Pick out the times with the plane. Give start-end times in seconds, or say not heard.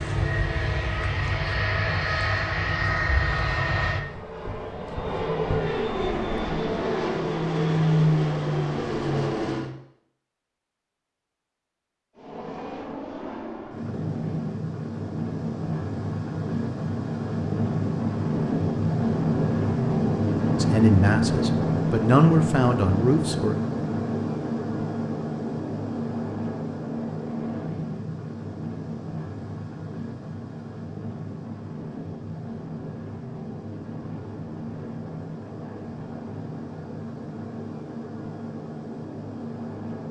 0.0-9.7, 12.2-40.0.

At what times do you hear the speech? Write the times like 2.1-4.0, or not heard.
20.6-23.6.